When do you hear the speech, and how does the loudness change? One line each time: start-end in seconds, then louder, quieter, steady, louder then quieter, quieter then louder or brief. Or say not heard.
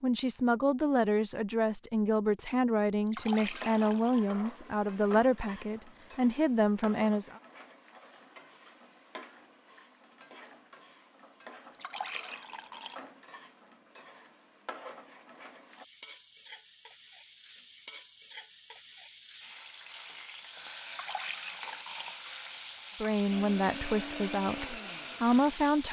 0.0-7.4 steady
23.0-25.8 brief.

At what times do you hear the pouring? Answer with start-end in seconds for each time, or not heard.
3.0-4.2, 11.7-13.0, 20.9-22.3.